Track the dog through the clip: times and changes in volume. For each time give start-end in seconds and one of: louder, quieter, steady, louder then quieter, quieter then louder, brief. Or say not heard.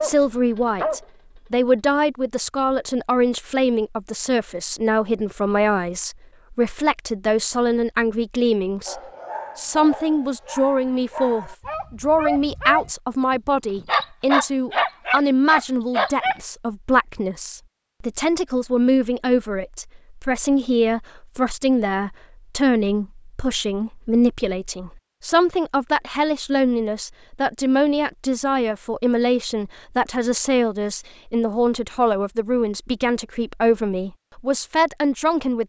0.0-1.7 brief
8.8-16.4 louder.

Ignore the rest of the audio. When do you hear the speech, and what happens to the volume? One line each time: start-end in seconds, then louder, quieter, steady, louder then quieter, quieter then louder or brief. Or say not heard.
0.0-35.6 steady.